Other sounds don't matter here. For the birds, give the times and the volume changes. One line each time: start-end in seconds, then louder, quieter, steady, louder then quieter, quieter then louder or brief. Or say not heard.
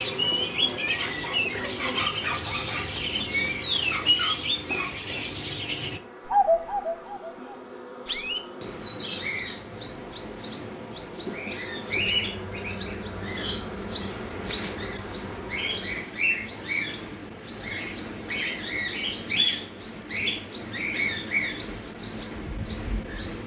0.0-23.4 steady.